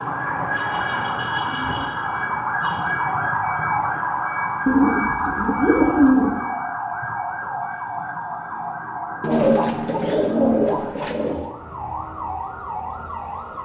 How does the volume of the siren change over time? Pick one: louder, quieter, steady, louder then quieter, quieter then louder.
quieter.